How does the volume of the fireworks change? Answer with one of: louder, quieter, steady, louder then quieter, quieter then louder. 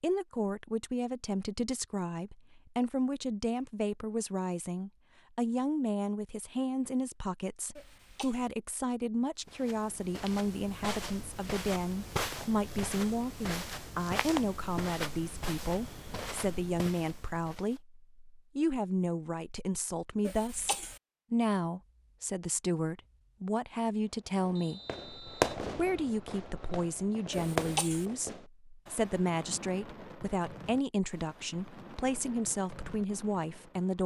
quieter.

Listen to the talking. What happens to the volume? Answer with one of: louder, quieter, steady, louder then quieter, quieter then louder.
steady.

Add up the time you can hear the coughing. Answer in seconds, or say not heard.
2 s.